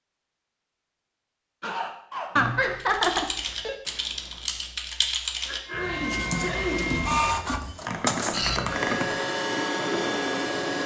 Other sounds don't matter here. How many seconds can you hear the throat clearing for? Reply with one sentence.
The throat clearing can be heard for 2 seconds in total.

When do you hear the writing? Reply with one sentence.
The writing can't be heard in this clip.